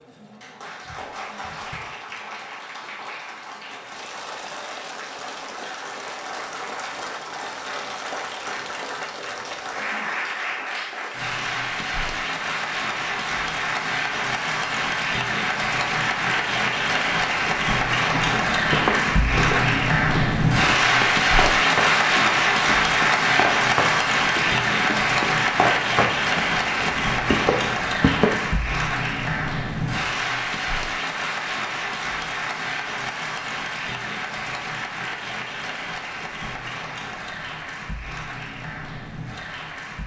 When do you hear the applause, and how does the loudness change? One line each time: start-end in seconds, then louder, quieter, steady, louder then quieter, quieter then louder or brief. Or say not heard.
0.0-40.0 louder then quieter.